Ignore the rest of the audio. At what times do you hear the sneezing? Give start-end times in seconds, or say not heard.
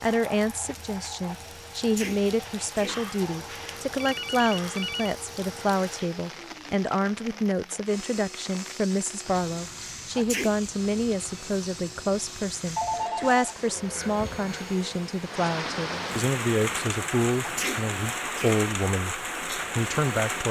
1.8-3.0, 10.2-10.6, 17.4-18.6.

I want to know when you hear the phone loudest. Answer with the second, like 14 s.
13 s.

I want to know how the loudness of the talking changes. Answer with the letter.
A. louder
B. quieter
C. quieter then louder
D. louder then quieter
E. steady
E.